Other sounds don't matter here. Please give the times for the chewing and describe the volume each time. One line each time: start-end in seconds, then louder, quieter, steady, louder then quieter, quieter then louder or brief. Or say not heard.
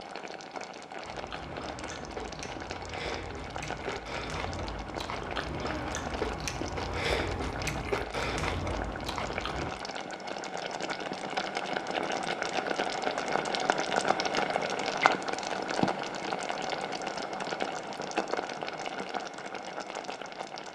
1.1-9.8 louder.